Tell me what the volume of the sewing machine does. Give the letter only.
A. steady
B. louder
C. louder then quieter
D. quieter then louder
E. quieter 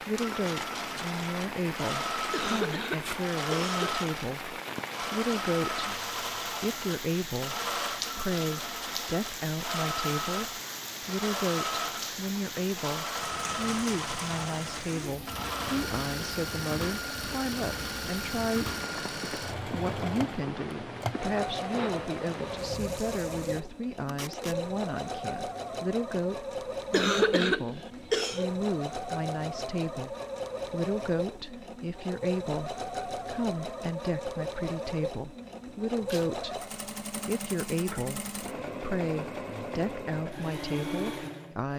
A.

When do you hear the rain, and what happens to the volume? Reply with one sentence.
The rain can be heard from 0.0 to 23.6 s, at a steady volume.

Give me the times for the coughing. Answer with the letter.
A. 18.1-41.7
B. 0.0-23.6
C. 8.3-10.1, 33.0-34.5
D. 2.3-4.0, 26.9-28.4
D.